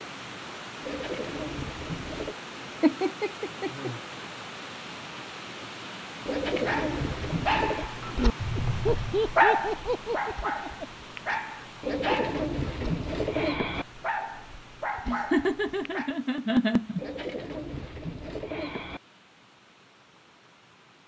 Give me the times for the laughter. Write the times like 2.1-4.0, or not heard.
2.8-4.0, 8.6-10.8, 15.1-17.2.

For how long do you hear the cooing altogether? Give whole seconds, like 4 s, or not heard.
7 s.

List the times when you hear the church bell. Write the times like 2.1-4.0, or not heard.
not heard.